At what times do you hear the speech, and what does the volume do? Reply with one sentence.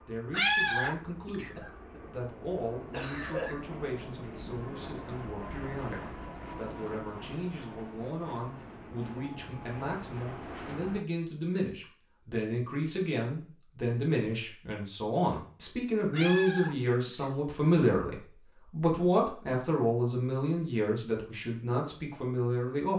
The speech can be heard from 0.1 to 22.9 s, getting louder.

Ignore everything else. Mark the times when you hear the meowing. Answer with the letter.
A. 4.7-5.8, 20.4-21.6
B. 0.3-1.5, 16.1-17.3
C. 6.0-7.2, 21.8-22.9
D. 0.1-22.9
B.